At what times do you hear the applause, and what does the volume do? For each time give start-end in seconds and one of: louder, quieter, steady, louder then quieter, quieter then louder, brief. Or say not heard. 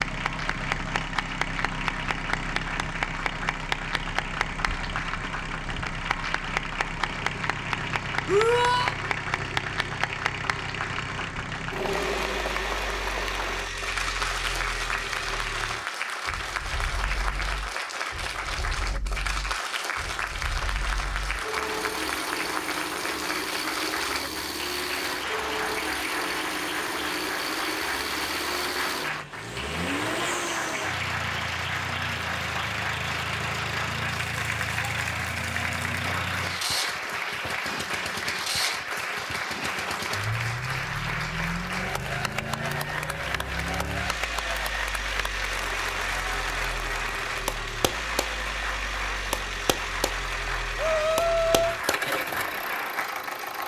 0.0-53.6 steady.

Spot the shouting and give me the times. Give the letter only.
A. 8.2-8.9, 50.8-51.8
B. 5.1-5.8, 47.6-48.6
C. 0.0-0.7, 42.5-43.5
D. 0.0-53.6
A.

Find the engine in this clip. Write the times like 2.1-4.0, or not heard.
0.0-53.6.